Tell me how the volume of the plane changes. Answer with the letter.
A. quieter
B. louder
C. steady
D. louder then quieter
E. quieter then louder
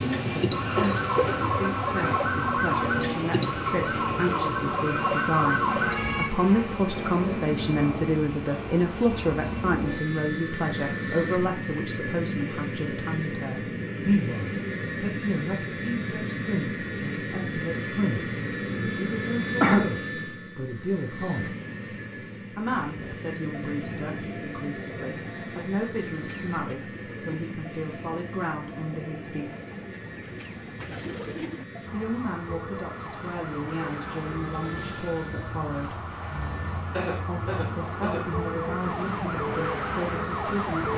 A.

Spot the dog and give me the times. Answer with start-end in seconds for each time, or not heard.
not heard.